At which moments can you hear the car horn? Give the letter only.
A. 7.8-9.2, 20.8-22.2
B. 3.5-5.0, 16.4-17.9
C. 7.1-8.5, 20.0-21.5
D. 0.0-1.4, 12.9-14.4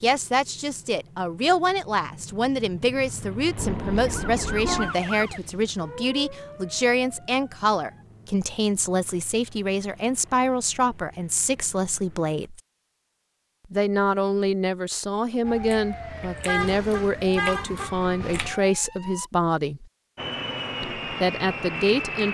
B.